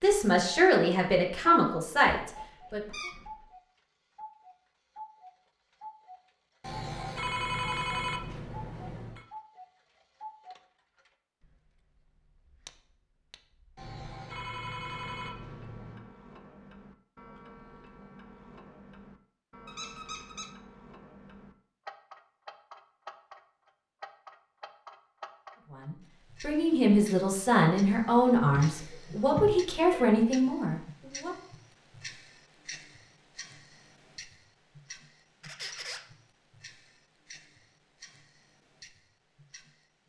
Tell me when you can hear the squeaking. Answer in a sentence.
You can hear the squeaking from 2.1 to 3.5 s, from 19.6 to 20.5 s and from 35.4 to 36.0 s.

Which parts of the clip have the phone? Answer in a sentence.
The phone can be heard from 6.6 to 9.2 s, from 13.8 to 16.1 s and from 28.4 to 30.1 s.